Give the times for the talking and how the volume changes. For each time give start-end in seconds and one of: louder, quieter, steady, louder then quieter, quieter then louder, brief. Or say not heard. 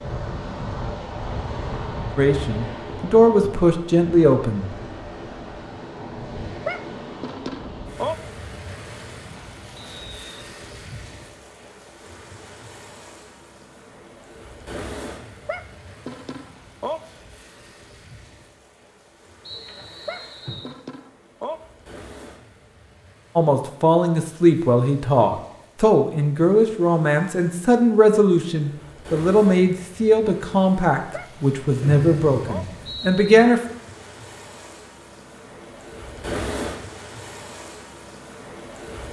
2.1-4.7 brief
23.4-33.6 steady.